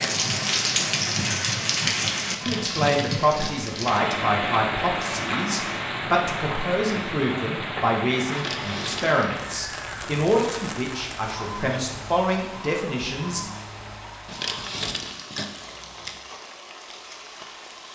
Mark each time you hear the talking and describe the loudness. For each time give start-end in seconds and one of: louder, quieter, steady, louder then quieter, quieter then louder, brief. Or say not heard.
2.4-13.4 steady.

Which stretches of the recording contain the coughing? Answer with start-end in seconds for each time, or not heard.
not heard.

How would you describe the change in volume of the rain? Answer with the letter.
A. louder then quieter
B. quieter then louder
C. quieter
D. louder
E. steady
C.